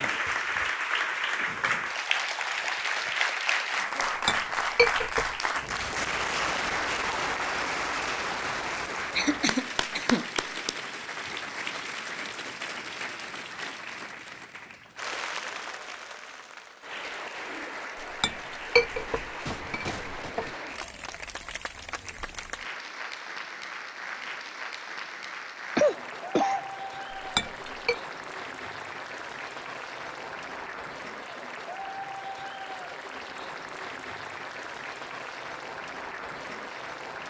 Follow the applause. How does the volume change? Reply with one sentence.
The volume of the applause goes down.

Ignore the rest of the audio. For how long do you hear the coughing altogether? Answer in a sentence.
You can hear the coughing for 3 seconds altogether.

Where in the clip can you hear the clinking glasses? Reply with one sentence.
You can hear the clinking glasses from 4.0 to 5.4 s, from 17.9 to 20.6 s and from 27.1 to 28.0 s.